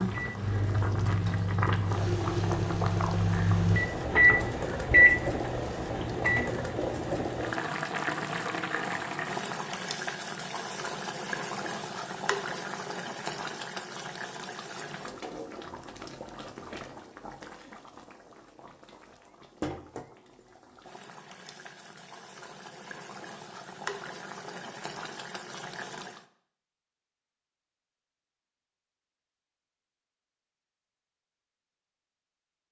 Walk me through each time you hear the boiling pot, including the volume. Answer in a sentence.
The boiling pot can be heard from 0.0 to 26.2 s, getting quieter.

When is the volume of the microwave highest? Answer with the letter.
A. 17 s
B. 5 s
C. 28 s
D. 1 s
B.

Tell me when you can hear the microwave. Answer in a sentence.
The microwave can be heard from 0.1 to 6.5 s.